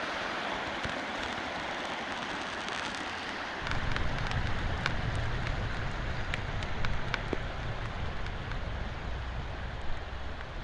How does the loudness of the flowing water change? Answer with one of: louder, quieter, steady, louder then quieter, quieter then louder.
quieter.